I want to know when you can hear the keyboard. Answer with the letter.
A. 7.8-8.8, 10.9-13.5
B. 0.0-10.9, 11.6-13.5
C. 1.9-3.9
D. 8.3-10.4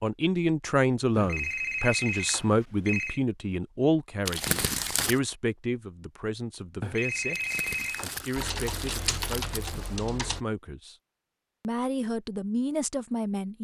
D.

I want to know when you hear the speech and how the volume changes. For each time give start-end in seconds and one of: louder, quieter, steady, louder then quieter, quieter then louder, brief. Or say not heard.
0.0-10.9 quieter
11.6-13.5 brief.